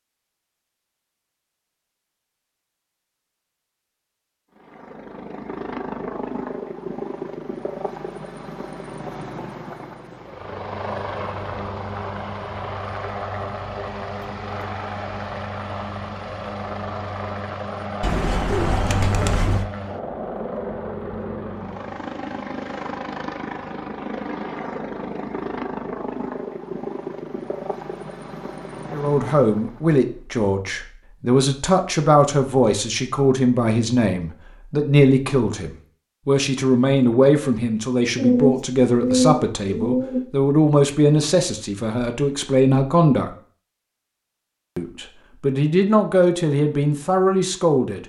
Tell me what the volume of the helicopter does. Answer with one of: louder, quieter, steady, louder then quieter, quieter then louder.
steady.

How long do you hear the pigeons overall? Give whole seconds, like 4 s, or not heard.
4 s.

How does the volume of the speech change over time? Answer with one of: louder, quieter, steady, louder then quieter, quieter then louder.
steady.